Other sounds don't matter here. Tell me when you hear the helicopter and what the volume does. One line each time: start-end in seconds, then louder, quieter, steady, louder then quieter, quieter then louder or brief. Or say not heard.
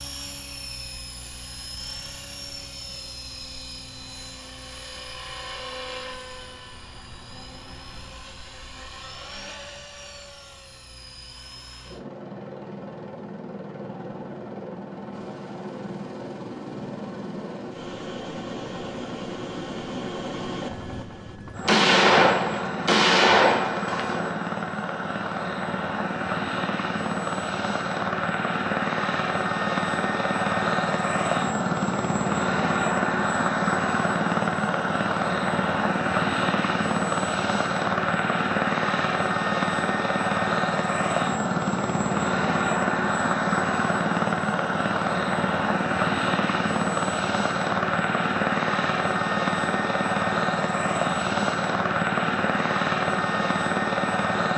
0.0-54.5 louder.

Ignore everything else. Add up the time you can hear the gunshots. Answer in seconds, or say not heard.
3 s.